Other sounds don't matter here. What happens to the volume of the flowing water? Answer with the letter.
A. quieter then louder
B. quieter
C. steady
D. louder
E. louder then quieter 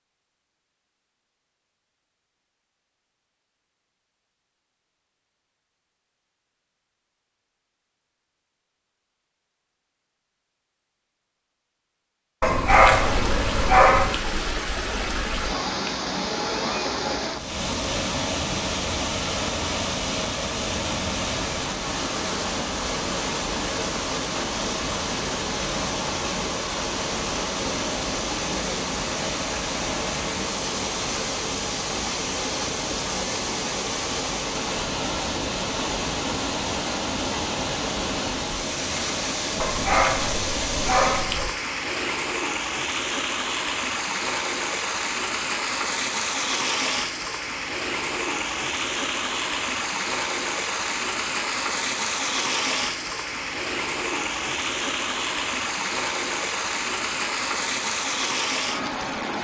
C.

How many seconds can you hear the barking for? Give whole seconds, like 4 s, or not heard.
4 s.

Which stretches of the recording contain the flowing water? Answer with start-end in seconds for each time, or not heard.
12.7-59.3.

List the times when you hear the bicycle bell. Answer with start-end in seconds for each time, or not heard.
not heard.